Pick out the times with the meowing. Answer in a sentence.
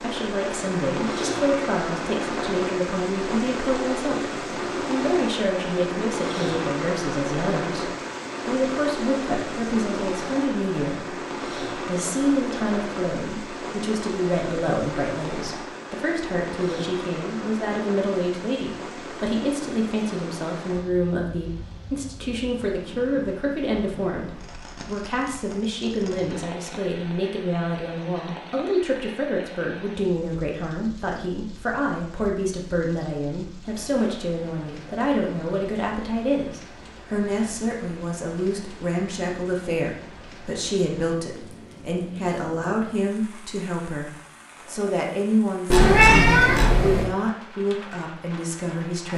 The meowing can be heard from 45.7 to 47.0 s.